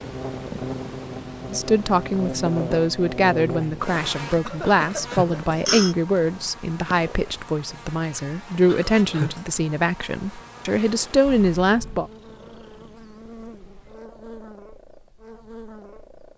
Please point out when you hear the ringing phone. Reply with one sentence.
You can hear the ringing phone from 4.7 to 6.0 s and from 8.7 to 9.4 s.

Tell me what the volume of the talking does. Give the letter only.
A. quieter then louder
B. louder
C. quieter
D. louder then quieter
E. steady
E.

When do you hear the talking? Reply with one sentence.
The talking can be heard from 1.5 to 12.1 s.